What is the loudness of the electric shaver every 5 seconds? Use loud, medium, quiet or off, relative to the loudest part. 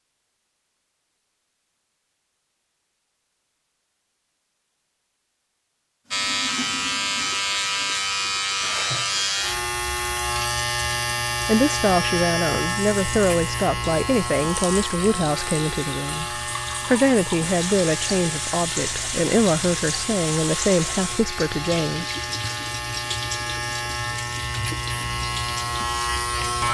off, loud, loud, medium, medium, loud.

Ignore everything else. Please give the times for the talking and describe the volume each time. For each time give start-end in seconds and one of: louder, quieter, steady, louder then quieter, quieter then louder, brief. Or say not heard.
11.4-22.1 steady.